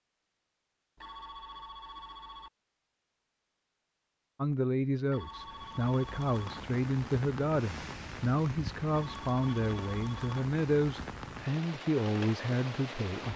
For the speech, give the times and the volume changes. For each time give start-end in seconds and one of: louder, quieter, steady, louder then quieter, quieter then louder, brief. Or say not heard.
4.3-13.3 steady.